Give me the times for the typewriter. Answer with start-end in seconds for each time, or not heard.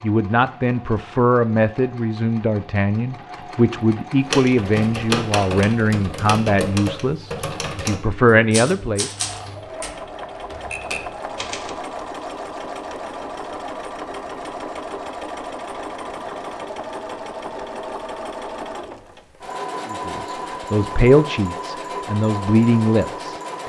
4.2-11.8.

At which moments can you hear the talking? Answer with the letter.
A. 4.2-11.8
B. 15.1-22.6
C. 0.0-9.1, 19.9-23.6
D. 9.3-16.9
C.